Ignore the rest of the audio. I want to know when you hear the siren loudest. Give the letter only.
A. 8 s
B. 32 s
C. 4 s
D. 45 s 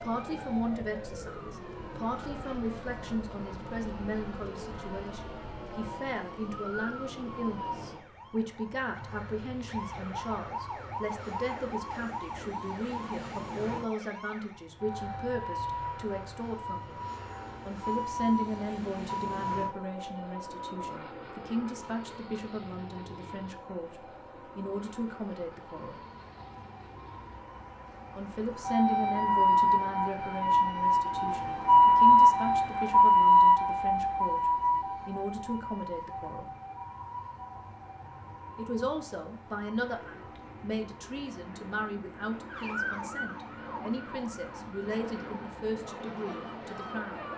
B.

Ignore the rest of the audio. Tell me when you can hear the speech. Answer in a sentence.
You can hear the speech from 0.0 to 17.1 s, from 17.6 to 26.0 s, from 28.1 to 36.5 s and from 38.5 to 47.2 s.